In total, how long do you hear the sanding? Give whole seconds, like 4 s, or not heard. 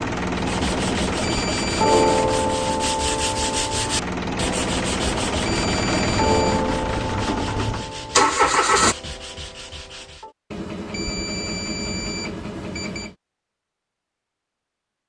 10 s.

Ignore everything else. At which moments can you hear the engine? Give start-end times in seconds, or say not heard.
0.0-8.9.